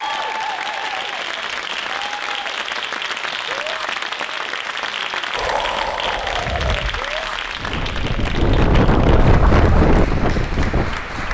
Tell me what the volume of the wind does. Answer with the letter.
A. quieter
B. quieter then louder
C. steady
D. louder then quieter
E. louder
B.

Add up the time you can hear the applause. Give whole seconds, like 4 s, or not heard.
11 s.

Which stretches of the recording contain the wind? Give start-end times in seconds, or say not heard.
5.3-11.2.